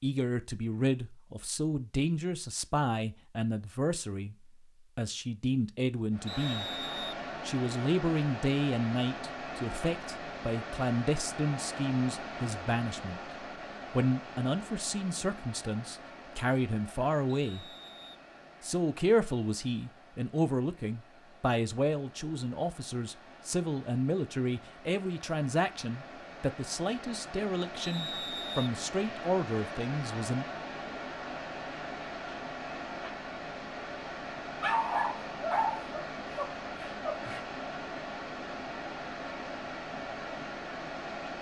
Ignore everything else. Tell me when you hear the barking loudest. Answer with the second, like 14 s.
35 s.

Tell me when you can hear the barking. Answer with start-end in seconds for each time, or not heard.
34.6-37.5.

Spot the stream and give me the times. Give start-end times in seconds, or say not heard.
6.1-41.3.